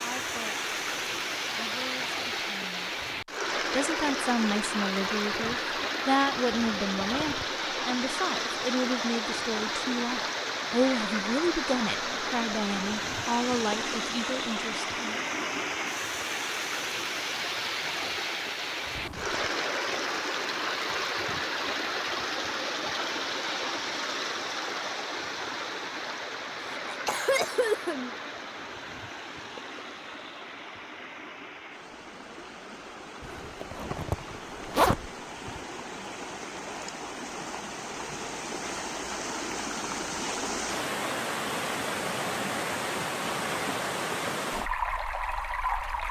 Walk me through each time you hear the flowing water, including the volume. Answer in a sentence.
The flowing water can be heard from 0.0 to 46.0 s, getting quieter then louder.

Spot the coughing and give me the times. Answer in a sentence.
You can hear the coughing from 26.7 to 28.1 s.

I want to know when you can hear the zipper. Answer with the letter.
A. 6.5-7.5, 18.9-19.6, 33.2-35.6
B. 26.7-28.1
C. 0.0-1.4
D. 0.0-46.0
A.